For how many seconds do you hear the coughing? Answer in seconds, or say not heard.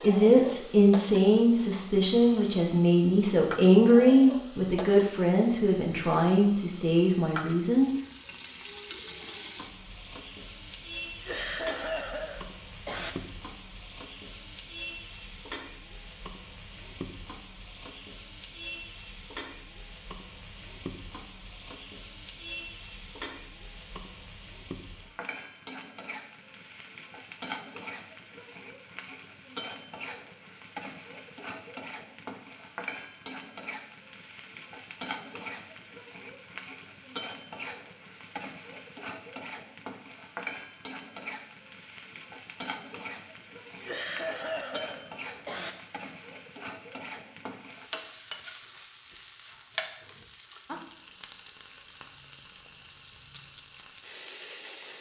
4 s.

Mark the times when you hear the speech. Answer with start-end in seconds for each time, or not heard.
0.0-7.9.